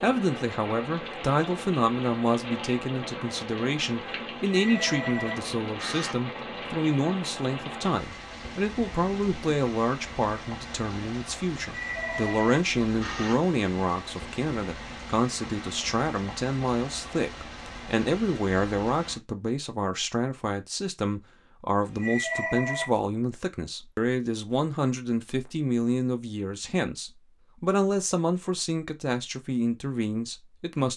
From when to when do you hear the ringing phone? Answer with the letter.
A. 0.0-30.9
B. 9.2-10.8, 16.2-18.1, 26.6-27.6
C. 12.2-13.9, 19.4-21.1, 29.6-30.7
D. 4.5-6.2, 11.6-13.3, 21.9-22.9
D.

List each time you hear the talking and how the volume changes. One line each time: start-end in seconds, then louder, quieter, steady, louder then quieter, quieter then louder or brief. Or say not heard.
0.0-30.9 steady.